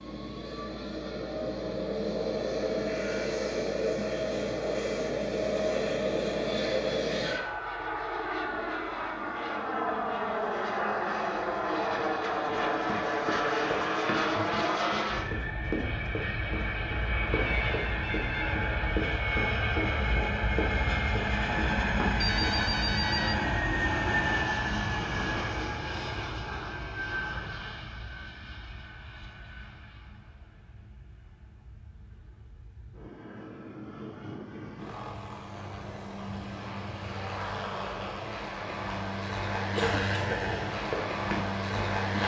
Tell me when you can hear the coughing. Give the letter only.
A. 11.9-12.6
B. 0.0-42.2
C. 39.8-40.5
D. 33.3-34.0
C.